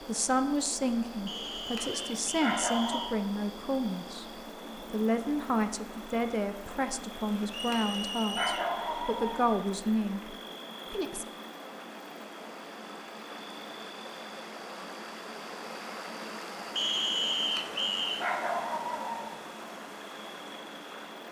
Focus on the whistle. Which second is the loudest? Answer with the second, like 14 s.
17 s.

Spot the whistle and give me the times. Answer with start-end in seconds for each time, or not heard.
1.2-3.1, 7.5-8.8, 16.8-18.2.